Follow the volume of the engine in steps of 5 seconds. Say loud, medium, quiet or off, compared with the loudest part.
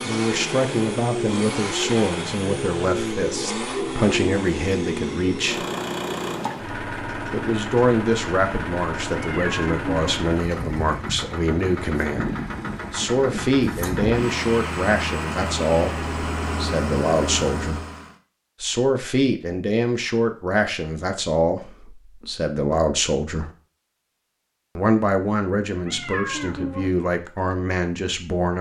loud, loud, loud, loud, off, off.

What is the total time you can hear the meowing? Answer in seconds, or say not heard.
2 s.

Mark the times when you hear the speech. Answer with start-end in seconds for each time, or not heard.
0.0-5.7, 7.3-17.8, 18.6-23.5, 24.8-28.5.